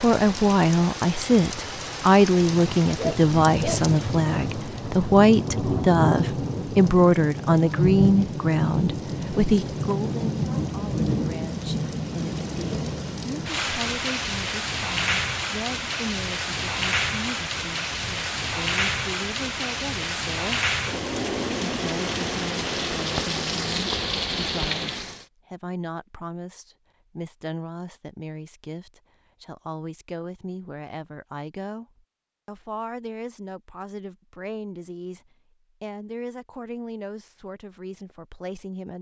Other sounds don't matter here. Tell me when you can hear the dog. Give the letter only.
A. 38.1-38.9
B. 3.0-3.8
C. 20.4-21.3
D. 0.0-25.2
B.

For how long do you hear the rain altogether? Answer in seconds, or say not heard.
25 s.